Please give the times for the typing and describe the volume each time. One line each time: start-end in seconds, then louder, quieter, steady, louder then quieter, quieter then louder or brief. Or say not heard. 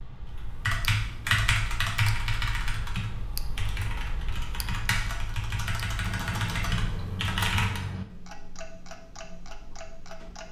0.2-7.8 quieter then louder.